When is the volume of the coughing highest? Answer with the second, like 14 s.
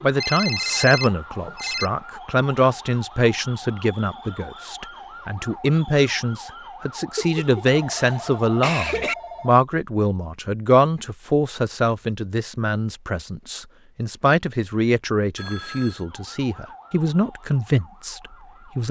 9 s.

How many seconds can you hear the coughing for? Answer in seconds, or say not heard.
2 s.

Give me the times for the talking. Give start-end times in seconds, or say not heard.
0.0-18.8.